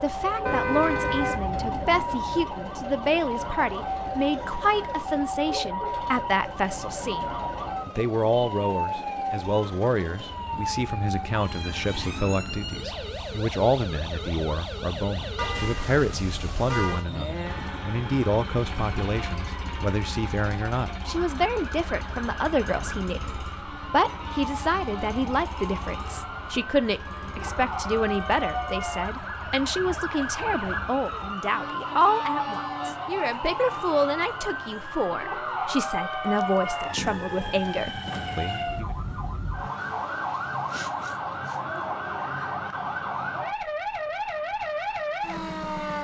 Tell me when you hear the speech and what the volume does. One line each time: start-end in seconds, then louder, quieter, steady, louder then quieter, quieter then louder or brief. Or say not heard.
0.0-39.0 steady.